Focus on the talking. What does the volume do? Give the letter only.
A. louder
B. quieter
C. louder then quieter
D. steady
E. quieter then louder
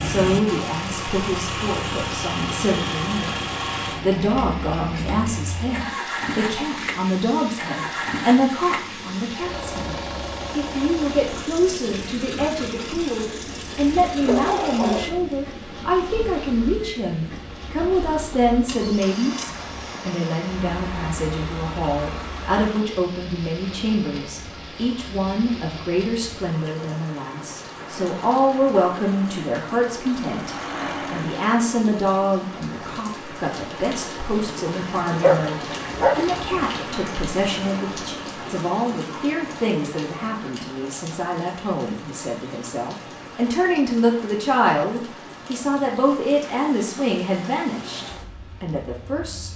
D.